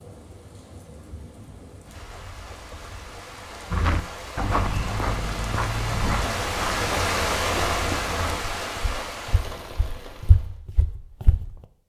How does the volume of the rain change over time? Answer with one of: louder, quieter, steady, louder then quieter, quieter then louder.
louder then quieter.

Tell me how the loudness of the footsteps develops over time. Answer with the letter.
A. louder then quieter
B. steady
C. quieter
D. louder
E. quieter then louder
E.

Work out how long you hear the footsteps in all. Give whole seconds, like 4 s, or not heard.
8 s.